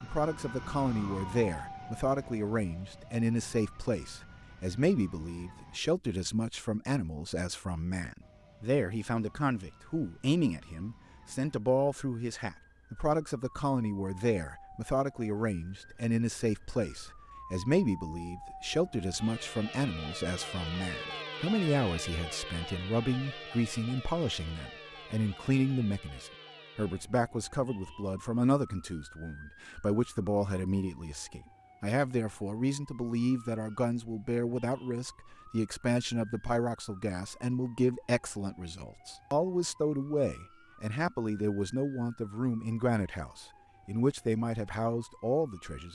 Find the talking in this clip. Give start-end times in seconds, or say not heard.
0.0-45.9.